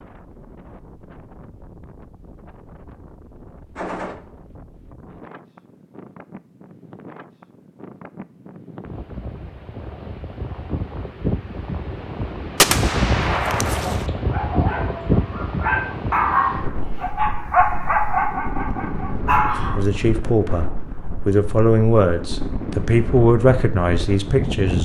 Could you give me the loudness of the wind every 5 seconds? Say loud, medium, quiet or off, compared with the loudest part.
quiet, quiet, loud, loud, loud.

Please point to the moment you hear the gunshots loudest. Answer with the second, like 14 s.
13 s.